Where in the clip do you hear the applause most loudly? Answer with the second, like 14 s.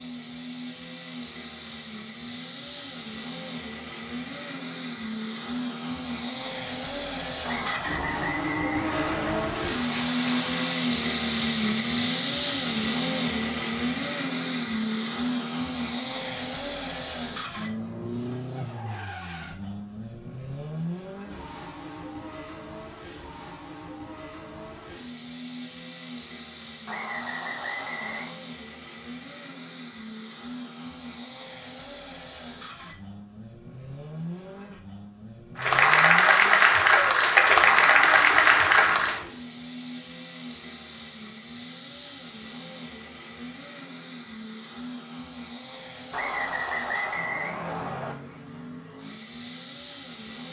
38 s.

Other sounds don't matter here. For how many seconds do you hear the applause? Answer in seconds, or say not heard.
6 s.